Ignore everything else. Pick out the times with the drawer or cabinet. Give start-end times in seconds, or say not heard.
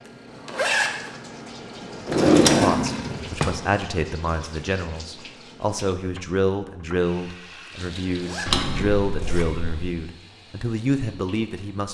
2.0-3.5, 8.4-9.9.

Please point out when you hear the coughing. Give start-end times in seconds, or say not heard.
not heard.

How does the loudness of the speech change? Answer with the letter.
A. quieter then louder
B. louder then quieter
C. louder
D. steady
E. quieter
D.